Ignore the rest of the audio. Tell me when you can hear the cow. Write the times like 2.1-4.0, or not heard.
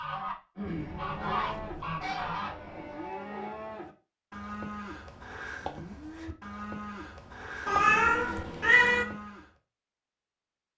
0.8-9.5.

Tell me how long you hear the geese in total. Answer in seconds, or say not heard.
3 s.